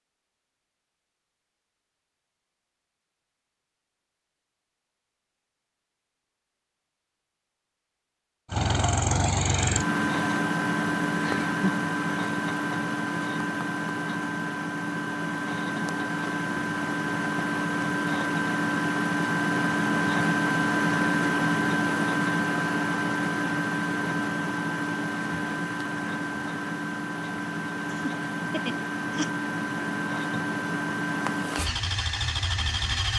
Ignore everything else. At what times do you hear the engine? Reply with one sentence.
The engine can be heard from 8.5 to 33.1 s.